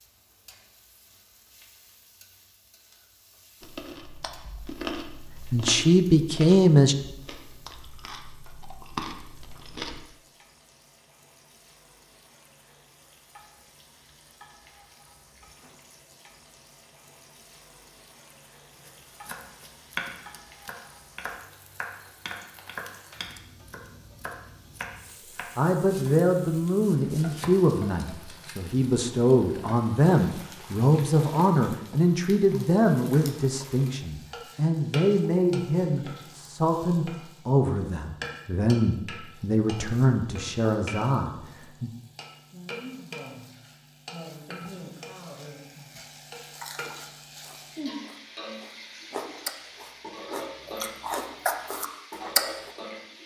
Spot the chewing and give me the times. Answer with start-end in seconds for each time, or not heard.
3.6-10.1, 46.5-52.7.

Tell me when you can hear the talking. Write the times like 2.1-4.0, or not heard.
5.5-7.0, 25.6-41.9.